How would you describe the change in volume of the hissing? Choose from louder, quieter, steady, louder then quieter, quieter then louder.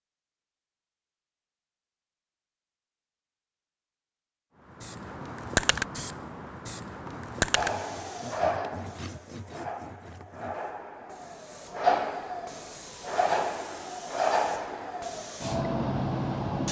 quieter then louder.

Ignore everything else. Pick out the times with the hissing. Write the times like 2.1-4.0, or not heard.
4.8-16.6.